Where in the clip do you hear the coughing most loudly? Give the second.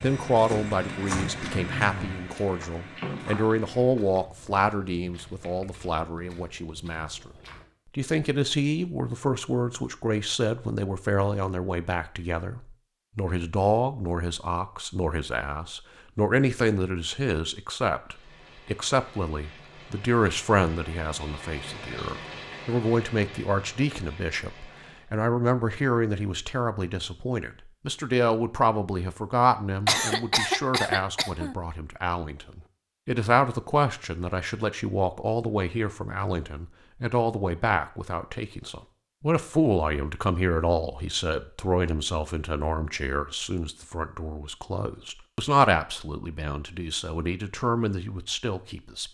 30 s.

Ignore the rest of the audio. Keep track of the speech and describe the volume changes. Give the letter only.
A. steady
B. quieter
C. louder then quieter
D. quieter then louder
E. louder
A.